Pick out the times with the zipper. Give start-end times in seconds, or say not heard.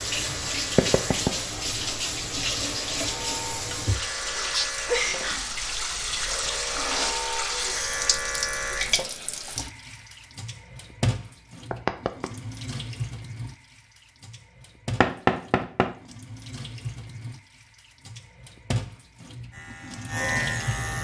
not heard.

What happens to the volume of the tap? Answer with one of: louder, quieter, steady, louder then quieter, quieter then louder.
quieter.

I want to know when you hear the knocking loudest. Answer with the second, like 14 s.
15 s.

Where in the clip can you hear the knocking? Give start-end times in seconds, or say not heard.
0.8-1.3, 11.7-12.2, 15.0-15.9.